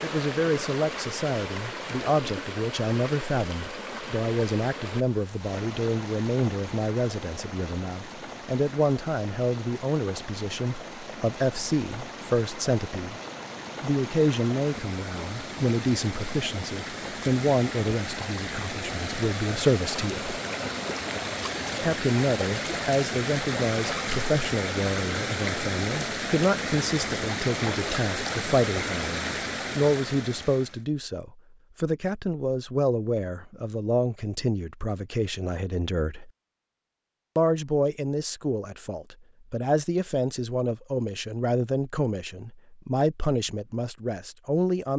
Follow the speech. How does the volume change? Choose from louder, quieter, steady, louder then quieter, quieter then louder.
steady.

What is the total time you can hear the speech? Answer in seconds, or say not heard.
42 s.